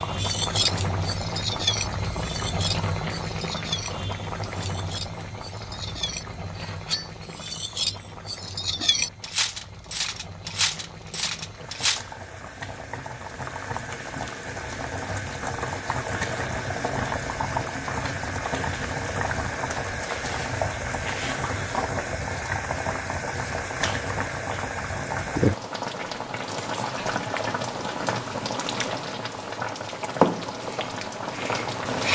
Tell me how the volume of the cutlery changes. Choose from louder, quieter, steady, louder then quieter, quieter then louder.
quieter then louder.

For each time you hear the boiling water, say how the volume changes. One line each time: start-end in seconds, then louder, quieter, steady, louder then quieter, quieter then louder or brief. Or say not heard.
0.0-32.0 quieter then louder.